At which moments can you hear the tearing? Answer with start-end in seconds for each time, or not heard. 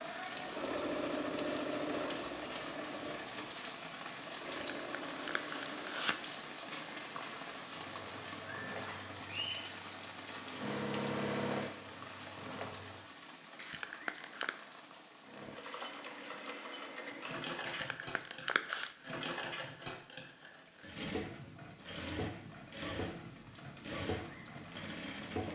4.5-6.2, 13.6-14.5, 17.6-18.9.